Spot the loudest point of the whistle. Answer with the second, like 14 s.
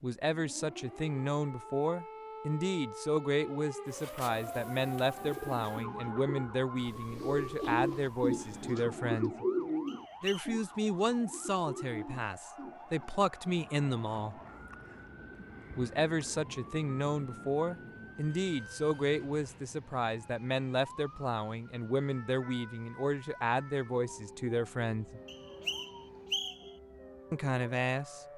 26 s.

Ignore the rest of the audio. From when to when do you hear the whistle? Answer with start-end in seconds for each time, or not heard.
9.8-10.5, 25.2-26.7.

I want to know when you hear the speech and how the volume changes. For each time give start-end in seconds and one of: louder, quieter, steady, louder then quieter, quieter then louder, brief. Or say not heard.
0.0-9.4 steady
10.2-14.4 quieter then louder
15.8-25.2 steady
27.3-28.2 brief.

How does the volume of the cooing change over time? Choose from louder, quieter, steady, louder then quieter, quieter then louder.
louder then quieter.